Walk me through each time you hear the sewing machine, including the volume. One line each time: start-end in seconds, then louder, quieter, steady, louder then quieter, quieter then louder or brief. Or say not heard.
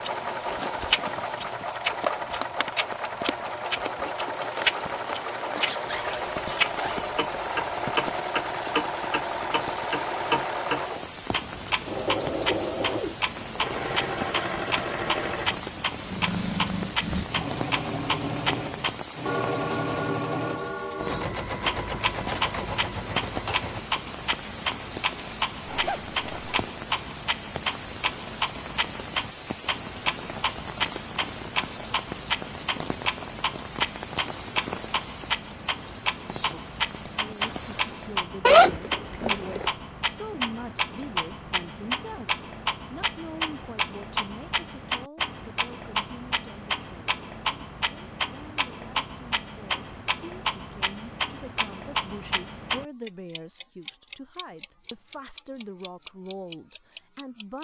0.0-23.8 steady.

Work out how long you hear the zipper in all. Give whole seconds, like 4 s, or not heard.
4 s.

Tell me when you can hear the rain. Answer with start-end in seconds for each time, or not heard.
0.0-38.2.